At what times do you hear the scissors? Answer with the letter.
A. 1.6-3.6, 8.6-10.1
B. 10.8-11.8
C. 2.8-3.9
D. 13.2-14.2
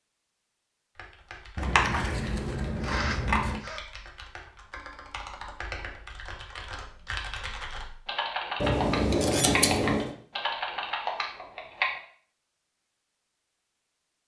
A.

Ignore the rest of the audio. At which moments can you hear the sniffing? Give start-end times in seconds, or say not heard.
2.8-3.9.